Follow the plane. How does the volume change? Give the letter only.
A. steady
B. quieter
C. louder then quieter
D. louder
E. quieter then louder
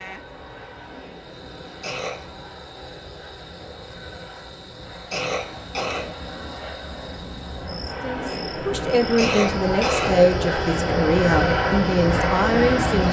D.